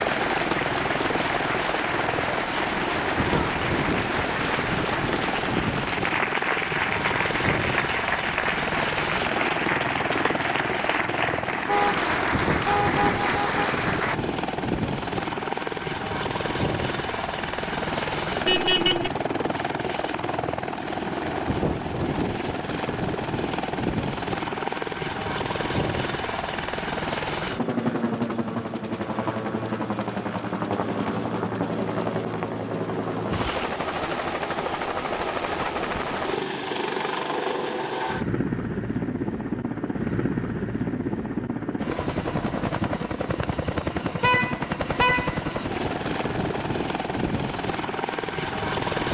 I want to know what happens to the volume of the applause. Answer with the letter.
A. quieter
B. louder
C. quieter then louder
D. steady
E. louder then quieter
D.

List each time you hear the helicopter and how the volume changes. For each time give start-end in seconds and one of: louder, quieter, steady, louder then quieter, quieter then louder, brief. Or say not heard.
0.0-49.1 steady.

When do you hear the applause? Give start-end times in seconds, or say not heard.
0.0-14.2.